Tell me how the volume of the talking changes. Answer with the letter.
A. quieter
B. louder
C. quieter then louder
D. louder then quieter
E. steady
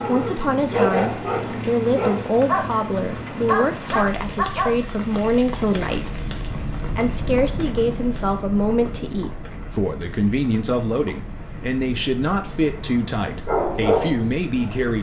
E.